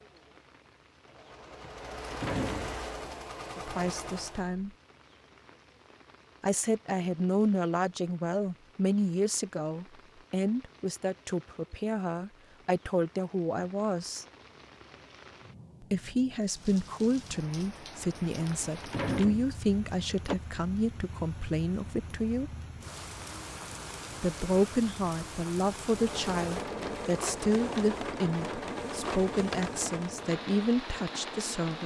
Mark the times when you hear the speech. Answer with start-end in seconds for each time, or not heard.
3.5-4.7, 6.4-14.2, 15.8-22.5, 24.2-31.8.